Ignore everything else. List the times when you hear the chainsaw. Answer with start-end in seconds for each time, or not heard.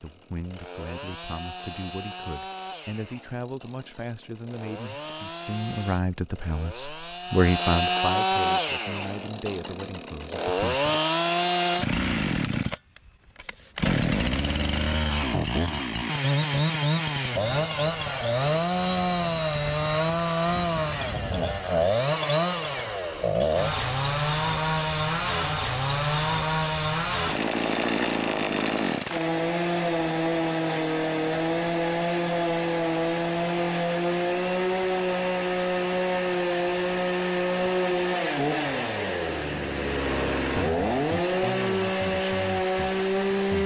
0.0-43.6.